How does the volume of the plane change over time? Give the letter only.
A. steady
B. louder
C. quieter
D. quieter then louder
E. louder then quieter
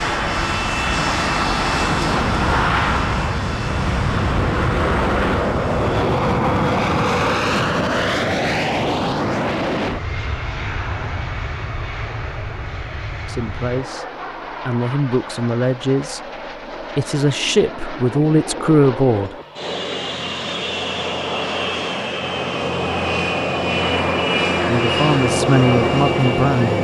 D.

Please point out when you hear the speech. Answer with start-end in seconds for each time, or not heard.
13.2-16.2, 16.8-19.4, 24.6-26.7.